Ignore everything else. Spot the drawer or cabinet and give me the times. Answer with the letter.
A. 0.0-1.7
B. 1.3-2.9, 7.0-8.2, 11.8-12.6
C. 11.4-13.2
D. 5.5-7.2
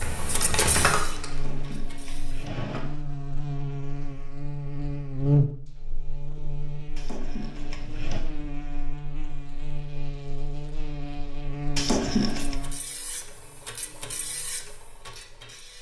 B.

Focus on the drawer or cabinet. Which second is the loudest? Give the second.
12 s.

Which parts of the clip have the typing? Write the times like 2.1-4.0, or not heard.
0.0-1.7.